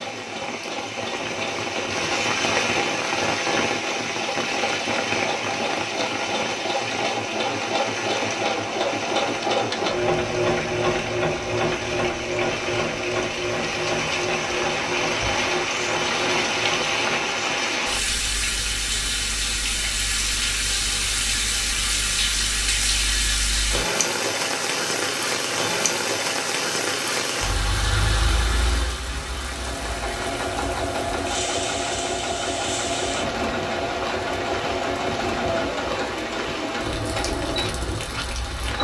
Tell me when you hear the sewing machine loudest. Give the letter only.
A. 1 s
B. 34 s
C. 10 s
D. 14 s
C.